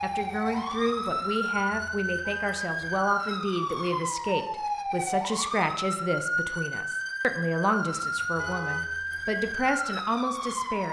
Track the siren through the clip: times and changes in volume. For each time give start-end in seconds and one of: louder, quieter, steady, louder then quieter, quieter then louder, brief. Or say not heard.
0.0-10.8 steady.